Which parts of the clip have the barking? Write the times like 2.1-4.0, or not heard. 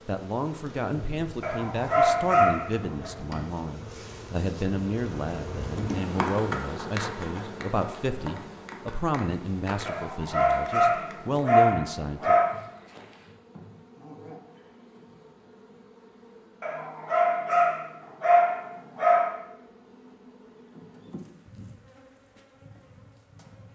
1.4-3.1, 9.8-12.4, 16.6-19.4.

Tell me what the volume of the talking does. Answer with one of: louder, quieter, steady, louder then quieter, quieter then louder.
steady.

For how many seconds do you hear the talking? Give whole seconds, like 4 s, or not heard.
12 s.